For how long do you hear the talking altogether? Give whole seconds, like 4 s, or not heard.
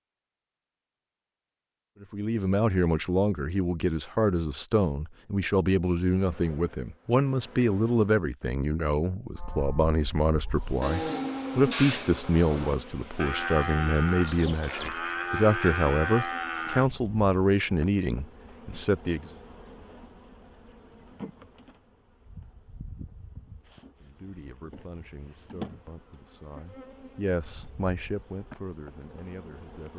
23 s.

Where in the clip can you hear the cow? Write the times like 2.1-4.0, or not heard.
9.3-16.9.